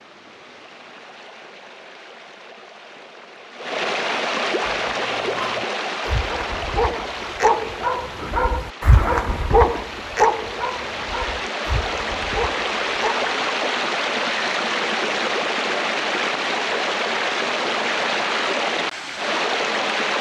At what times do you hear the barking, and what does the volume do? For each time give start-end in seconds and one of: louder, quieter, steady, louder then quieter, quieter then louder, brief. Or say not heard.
4.6-13.3 louder then quieter.